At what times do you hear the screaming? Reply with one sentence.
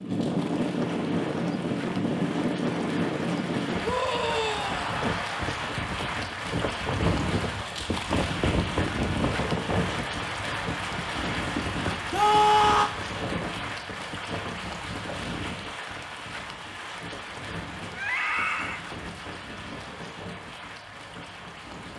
You can hear the screaming from 3.8 to 5.0 s, from 12.1 to 12.9 s and from 17.9 to 18.8 s.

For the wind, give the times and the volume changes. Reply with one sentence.
You can hear the wind from 0.0 to 21.9 s, getting quieter.